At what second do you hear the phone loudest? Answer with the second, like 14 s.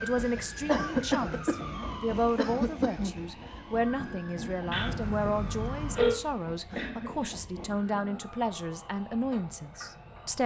6 s.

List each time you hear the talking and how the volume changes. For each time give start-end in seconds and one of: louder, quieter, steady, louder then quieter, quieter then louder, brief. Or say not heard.
0.0-10.4 steady.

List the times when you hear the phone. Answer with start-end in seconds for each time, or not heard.
4.7-6.2.